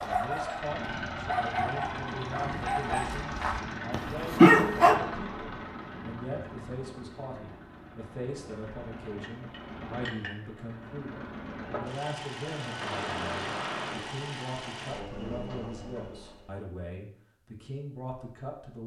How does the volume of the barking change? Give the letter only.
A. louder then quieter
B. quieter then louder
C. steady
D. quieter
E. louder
E.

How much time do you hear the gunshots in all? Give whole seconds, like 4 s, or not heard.
2 s.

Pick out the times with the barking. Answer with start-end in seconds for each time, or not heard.
0.0-5.0.